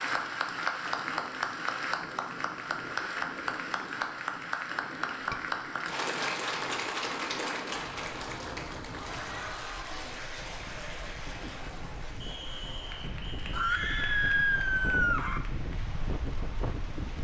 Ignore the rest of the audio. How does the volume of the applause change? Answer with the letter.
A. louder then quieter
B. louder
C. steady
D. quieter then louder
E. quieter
E.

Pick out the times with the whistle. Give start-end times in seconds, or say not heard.
12.2-14.1.